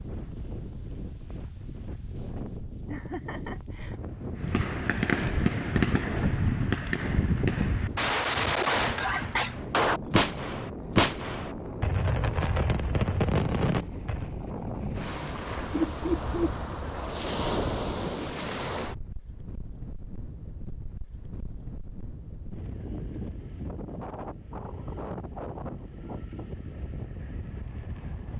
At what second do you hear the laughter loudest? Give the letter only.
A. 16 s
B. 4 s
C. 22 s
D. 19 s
A.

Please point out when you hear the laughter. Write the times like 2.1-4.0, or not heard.
2.9-4.0, 14.8-16.6.